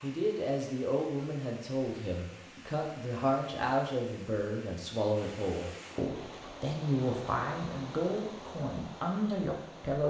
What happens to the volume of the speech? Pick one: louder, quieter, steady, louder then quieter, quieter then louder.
steady.